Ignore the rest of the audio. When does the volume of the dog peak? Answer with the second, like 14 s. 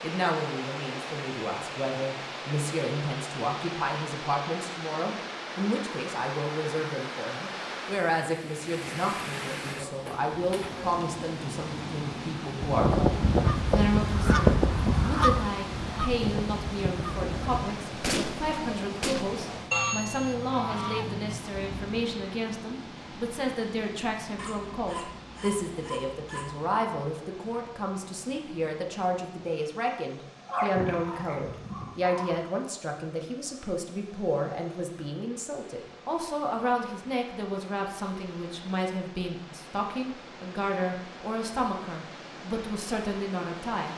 31 s.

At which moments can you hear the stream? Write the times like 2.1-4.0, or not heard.
0.0-43.9.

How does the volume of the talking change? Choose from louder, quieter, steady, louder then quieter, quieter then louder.
steady.